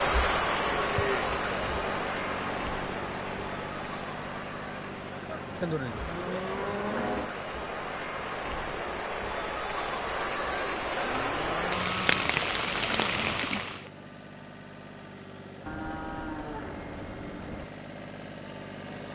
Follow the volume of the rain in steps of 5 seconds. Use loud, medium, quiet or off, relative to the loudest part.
loud, medium, loud, off.